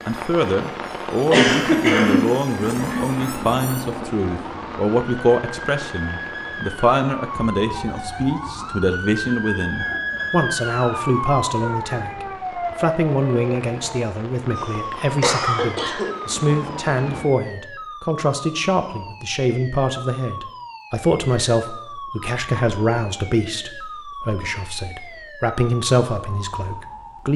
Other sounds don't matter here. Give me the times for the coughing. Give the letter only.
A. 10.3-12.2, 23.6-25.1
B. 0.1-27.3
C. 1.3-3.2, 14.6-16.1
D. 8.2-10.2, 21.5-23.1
C.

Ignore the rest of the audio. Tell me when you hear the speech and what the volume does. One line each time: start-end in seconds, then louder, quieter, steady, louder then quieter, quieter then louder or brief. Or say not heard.
0.1-27.3 steady.